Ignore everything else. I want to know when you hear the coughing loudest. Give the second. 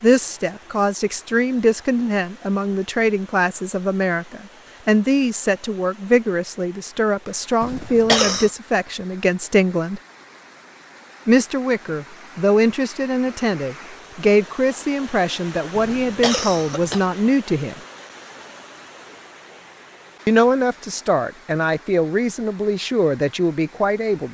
8 s.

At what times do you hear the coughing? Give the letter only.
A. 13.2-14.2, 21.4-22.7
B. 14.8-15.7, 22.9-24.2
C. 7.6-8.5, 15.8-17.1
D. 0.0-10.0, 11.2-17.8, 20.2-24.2
C.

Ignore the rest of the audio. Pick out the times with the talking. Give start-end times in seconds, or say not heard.
0.0-10.0, 11.2-17.8, 20.2-24.2.